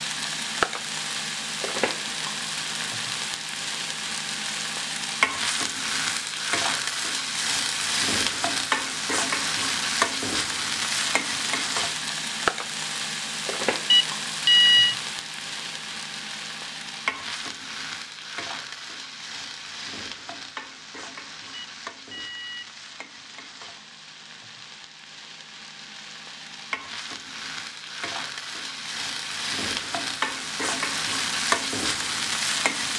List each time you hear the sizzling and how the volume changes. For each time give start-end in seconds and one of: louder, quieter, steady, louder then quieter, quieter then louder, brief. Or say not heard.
0.0-32.9 quieter then louder.